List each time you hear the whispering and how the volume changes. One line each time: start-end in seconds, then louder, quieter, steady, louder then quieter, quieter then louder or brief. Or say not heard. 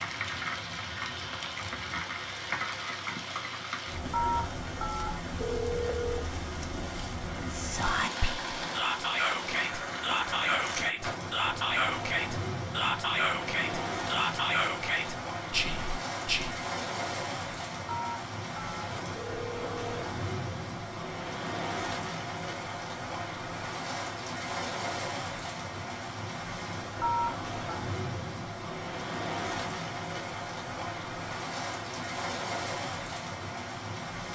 7.3-16.6 steady.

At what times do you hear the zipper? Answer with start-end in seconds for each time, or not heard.
not heard.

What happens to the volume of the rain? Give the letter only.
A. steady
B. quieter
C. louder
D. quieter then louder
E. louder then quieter
A.